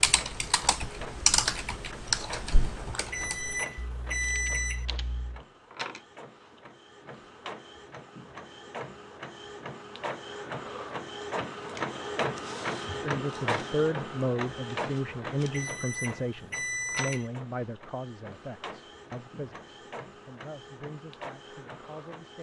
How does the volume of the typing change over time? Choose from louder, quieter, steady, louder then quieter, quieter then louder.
quieter.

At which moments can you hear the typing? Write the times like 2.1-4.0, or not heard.
0.0-5.4.